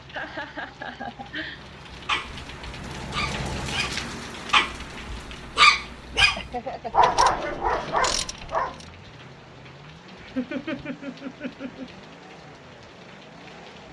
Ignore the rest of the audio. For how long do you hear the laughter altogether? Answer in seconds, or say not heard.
4 s.